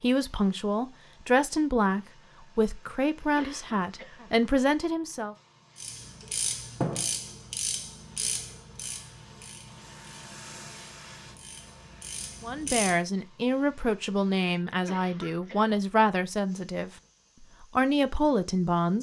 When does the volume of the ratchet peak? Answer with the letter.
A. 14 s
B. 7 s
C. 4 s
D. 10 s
B.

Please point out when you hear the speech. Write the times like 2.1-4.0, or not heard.
0.0-5.3, 12.4-18.9.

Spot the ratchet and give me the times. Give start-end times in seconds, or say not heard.
5.8-13.0.